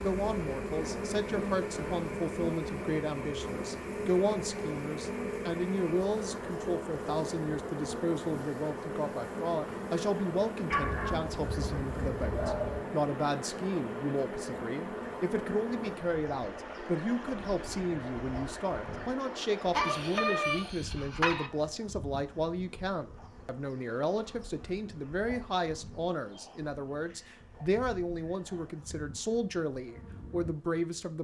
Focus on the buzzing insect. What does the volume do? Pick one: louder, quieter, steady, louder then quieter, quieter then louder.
quieter.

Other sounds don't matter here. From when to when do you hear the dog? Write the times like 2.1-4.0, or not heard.
10.7-12.8, 19.7-21.5.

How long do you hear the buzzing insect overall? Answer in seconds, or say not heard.
31 s.